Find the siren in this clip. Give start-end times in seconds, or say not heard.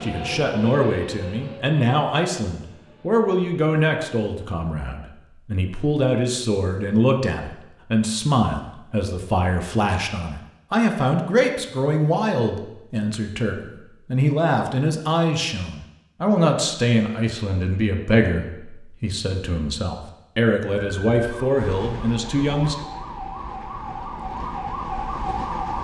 20.8-25.7.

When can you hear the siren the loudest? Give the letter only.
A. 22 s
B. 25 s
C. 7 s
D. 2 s
B.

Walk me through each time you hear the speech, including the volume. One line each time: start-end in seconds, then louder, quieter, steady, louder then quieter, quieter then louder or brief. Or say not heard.
0.0-22.8 steady.